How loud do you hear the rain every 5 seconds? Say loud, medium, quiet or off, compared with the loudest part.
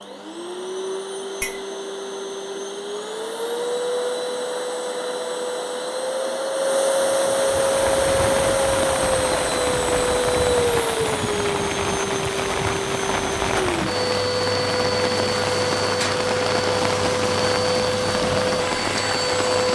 off, loud, loud, loud.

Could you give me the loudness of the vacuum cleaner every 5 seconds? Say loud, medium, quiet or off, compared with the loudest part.
medium, loud, loud, loud.